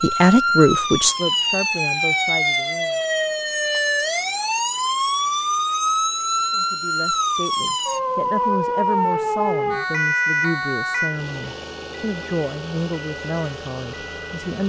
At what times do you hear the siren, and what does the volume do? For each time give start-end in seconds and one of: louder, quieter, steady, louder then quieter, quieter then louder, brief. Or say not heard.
0.0-14.6 quieter.